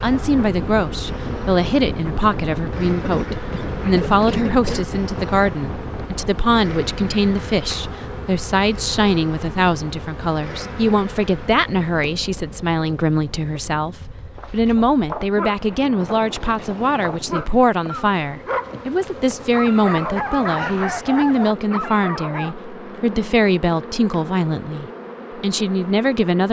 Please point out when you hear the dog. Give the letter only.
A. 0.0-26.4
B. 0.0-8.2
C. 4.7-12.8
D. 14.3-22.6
D.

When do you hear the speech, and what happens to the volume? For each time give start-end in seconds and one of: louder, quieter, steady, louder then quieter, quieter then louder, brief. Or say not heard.
0.0-26.4 steady.